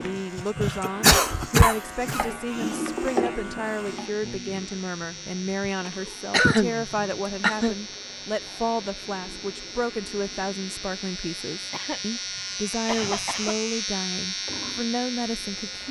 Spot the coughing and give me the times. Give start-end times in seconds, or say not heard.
0.7-2.2, 5.8-7.8, 11.7-13.6.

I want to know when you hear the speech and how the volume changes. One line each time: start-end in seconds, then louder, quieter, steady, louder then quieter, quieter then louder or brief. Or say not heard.
0.0-15.8 steady.